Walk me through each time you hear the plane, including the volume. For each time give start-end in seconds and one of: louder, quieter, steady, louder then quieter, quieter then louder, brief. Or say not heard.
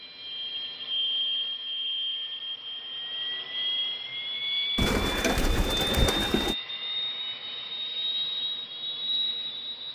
0.0-9.9 steady.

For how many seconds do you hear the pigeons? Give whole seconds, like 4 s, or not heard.
2 s.